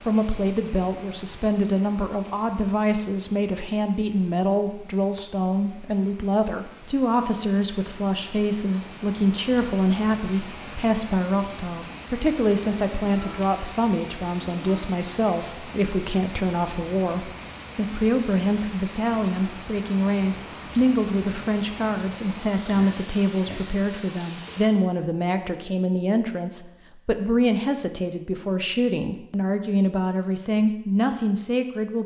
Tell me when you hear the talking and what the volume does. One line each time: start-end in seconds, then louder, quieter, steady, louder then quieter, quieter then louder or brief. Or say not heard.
0.0-32.0 steady.